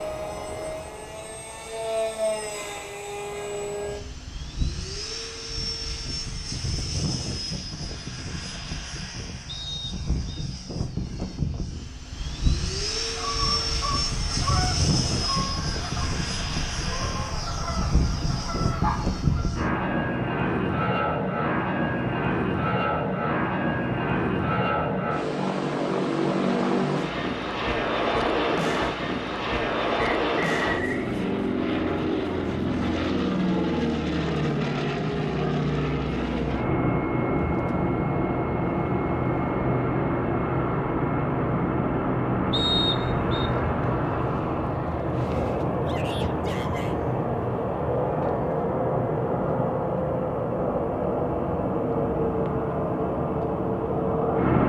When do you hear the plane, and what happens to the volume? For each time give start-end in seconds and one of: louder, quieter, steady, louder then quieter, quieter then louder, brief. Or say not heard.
0.0-54.6 louder.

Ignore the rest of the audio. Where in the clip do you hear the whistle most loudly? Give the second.
43 s.